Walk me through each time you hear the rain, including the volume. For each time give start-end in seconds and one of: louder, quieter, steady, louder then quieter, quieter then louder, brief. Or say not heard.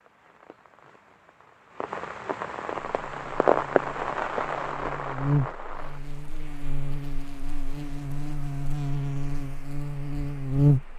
0.0-10.9 louder then quieter.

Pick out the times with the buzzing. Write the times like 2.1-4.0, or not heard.
2.7-10.9.